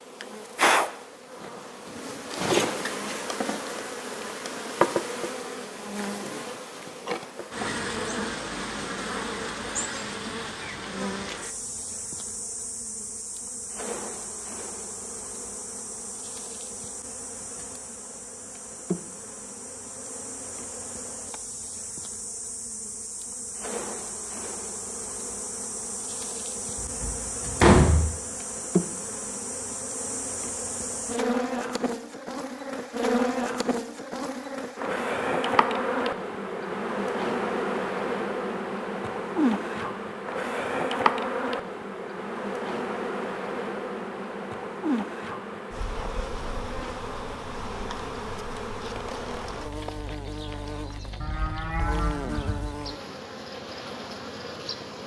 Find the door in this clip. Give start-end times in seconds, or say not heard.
26.8-28.1.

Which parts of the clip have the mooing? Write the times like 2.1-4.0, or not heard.
51.2-52.8.